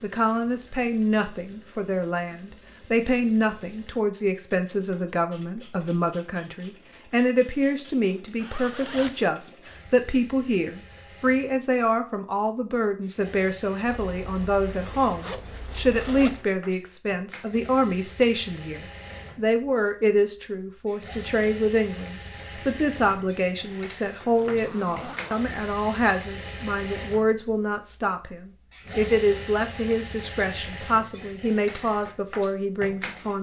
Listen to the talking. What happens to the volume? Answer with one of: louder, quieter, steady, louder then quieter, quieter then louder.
steady.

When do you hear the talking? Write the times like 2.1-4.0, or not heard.
0.0-33.3.